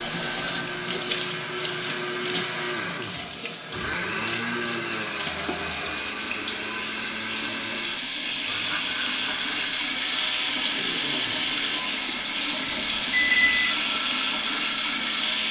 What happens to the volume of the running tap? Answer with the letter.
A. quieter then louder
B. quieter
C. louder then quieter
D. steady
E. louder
E.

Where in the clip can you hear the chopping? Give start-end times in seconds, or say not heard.
not heard.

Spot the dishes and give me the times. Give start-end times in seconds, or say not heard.
not heard.